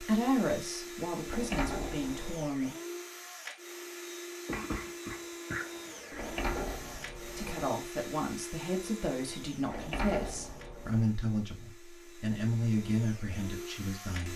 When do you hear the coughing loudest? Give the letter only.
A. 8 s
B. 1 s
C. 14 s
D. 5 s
D.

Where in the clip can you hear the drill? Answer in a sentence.
You can hear the drill from 0.0 to 14.3 s.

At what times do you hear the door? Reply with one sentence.
The door can be heard from 1.2 to 2.5 s, from 6.1 to 7.7 s and from 9.7 to 11.1 s.